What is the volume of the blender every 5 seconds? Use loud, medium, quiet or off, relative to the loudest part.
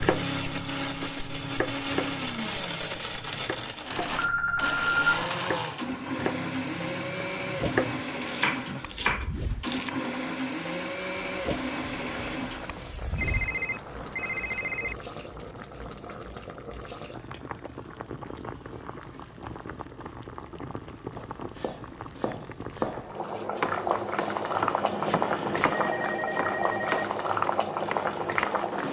loud, loud, loud, off, off, off.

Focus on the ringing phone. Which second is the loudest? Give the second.
5 s.